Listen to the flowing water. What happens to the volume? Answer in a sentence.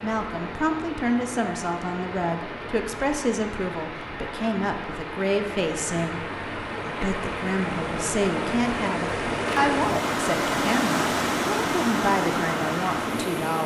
The volume of the flowing water goes up.